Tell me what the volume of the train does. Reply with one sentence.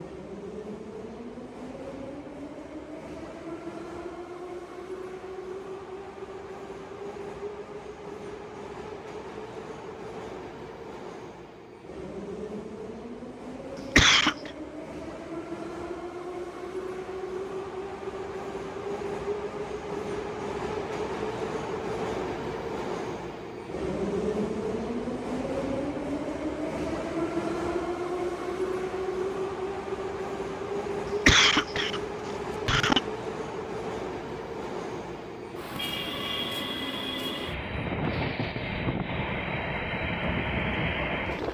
The loudness of the train goes up.